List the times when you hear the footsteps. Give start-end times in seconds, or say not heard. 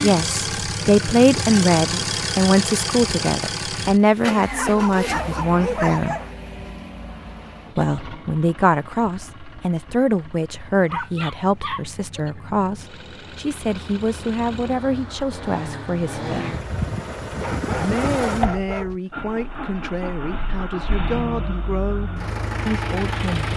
not heard.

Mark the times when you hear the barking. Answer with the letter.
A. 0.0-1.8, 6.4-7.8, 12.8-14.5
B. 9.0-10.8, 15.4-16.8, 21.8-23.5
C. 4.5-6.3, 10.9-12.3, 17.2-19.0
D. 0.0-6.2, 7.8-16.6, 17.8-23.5
C.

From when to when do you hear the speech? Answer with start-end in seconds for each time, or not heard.
0.0-6.2, 7.8-16.6, 17.8-23.5.